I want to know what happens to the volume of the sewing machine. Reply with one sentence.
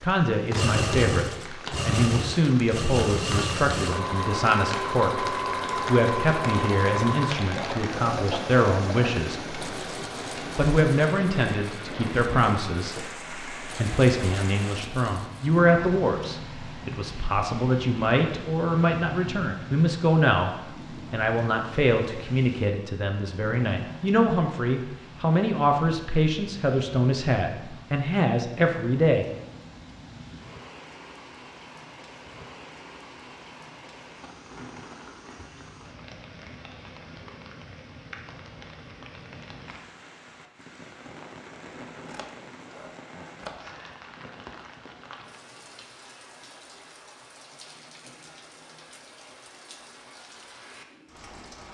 The loudness of the sewing machine goes down.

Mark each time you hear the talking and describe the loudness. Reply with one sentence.
You can hear the talking from 0.0 to 9.6 s, at a steady volume; and from 10.6 to 29.2 s, at a steady volume.